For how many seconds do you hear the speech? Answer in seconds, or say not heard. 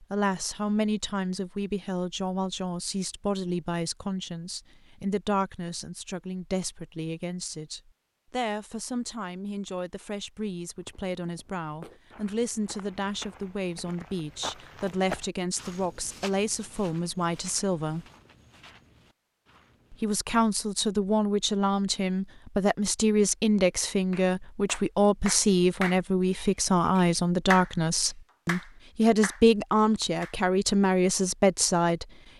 30 s.